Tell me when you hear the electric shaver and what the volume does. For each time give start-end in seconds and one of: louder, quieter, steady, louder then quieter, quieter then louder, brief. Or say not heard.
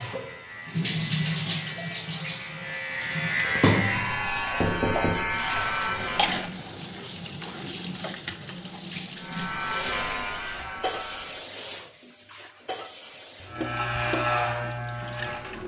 0.0-6.5 louder
9.2-11.4 brief
13.4-15.6 brief.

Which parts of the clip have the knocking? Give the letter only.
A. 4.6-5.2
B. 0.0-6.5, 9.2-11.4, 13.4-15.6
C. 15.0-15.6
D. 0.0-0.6
A.